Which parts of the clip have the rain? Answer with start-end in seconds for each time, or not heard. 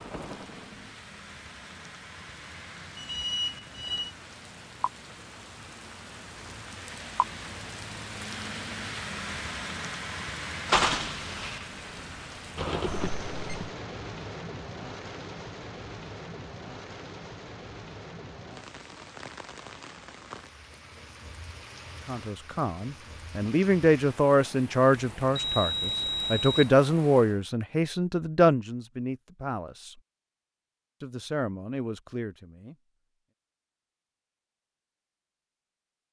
0.0-27.4.